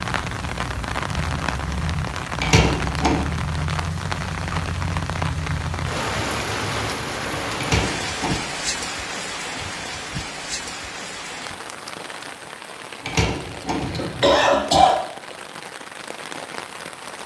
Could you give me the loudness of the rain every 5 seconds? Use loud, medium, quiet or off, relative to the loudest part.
loud, loud, medium, medium.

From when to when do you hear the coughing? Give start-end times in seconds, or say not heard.
2.4-3.2, 7.6-8.4, 13.1-14.9.